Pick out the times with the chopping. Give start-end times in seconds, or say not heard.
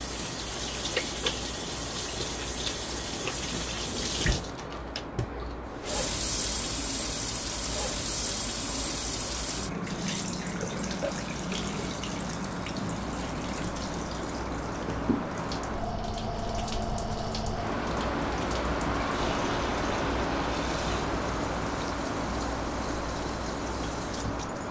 not heard.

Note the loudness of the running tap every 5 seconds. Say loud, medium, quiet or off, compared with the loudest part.
loud, loud, loud, medium, medium.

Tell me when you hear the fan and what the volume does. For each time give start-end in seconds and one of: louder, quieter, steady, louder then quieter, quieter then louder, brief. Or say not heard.
0.0-24.6 louder.